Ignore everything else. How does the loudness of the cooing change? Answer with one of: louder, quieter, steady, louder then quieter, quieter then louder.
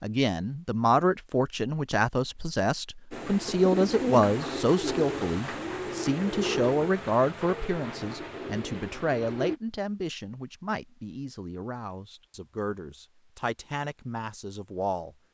quieter.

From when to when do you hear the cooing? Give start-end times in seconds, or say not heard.
3.1-9.6.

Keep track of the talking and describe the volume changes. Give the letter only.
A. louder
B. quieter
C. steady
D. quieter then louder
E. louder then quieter
B.